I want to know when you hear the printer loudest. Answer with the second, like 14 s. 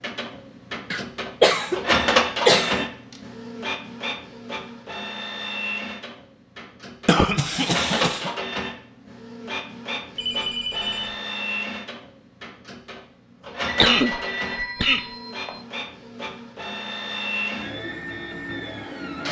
2 s.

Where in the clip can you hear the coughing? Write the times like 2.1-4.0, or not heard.
0.9-2.9, 7.0-8.3, 13.8-15.1.